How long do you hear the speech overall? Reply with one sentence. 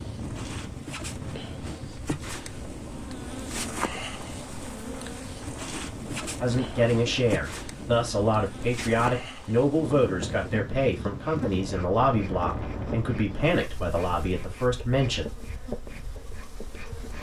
The speech can be heard for 9 seconds in total.